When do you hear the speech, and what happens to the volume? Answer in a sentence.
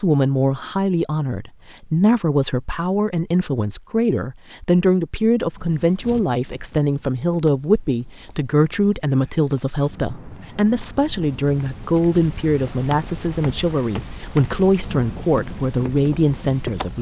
The speech can be heard from 0.0 to 16.9 s, at a steady volume.